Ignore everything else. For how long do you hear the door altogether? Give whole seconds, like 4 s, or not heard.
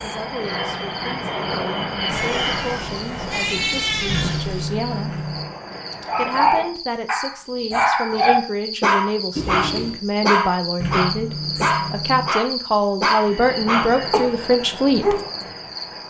3 s.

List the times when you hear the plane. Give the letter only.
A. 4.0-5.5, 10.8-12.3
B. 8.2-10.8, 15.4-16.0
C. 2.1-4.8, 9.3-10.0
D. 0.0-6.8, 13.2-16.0
D.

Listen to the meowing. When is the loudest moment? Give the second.
4 s.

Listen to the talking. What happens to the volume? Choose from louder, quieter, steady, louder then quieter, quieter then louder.
louder.